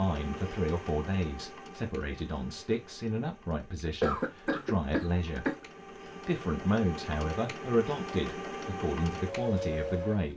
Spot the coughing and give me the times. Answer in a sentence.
You can hear the coughing from 4.0 to 5.6 s.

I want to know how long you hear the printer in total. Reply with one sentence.
You can hear the printer for 10 seconds altogether.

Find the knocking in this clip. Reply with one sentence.
You can't hear the knocking here.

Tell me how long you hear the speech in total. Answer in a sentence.
You can hear the speech for 10 seconds altogether.